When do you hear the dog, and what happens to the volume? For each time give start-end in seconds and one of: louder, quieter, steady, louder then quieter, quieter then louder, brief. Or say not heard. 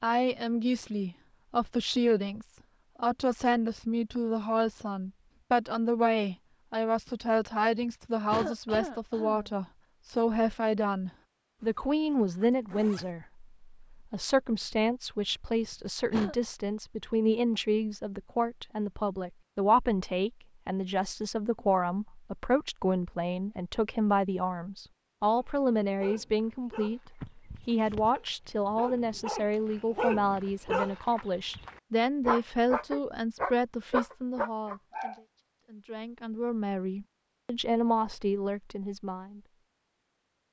25.4-35.1 louder.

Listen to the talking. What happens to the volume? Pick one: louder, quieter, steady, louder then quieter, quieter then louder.
steady.